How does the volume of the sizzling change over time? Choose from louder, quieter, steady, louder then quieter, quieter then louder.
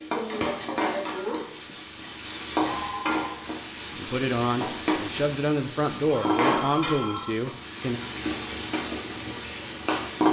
steady.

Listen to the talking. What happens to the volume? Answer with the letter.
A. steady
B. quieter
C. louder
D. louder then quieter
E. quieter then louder
A.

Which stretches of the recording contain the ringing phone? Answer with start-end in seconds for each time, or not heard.
2.6-3.5, 6.0-7.4.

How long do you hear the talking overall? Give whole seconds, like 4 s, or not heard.
4 s.